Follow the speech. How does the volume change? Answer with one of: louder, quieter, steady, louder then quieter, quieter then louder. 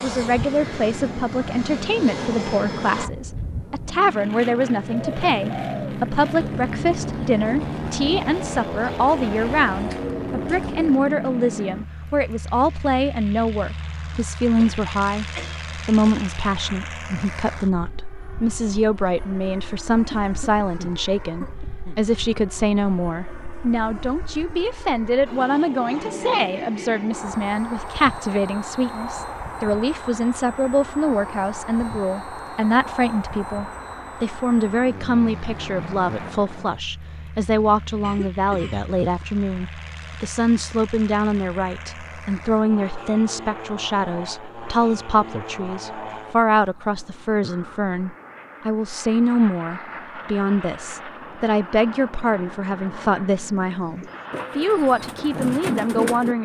steady.